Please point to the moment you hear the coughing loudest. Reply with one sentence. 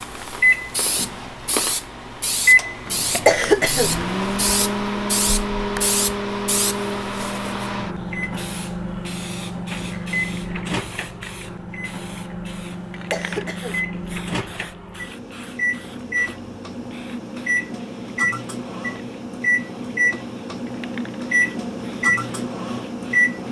The volume of the coughing peaks at 3 seconds.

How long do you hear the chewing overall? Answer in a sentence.
You can hear the chewing for 2 seconds altogether.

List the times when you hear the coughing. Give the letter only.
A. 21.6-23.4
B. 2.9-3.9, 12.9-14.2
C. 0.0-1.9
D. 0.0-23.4
B.